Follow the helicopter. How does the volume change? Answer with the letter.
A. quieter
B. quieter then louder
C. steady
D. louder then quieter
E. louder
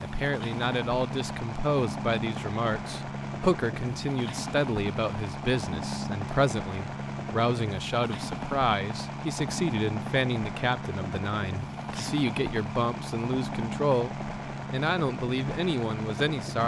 C.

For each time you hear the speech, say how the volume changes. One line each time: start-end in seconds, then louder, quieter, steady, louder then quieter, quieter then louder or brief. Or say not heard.
0.0-16.6 steady.